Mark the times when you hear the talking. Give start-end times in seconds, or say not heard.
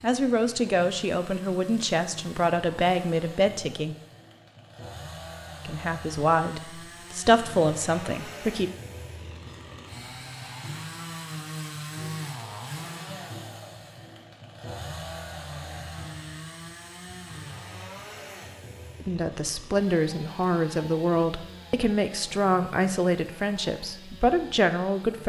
0.0-4.0, 5.7-8.7, 19.0-25.2.